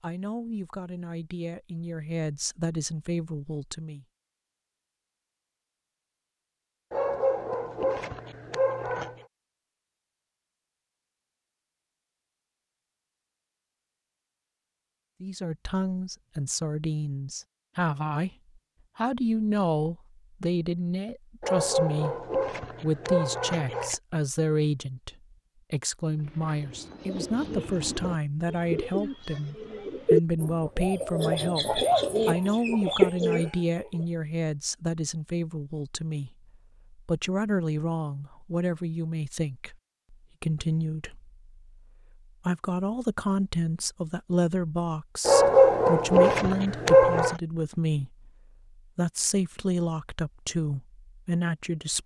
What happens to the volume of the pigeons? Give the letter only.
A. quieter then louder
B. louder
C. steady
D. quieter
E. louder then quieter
B.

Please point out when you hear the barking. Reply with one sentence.
The barking can be heard from 6.9 to 9.2 s, from 21.4 to 23.9 s and from 45.2 to 47.4 s.